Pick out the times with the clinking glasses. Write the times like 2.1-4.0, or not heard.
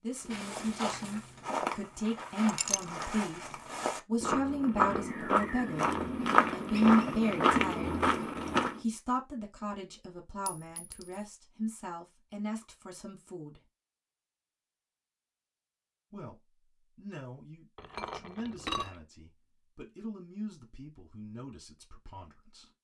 2.5-3.1, 10.4-11.2, 17.8-18.9.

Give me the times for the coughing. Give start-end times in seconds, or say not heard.
not heard.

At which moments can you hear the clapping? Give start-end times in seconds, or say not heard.
not heard.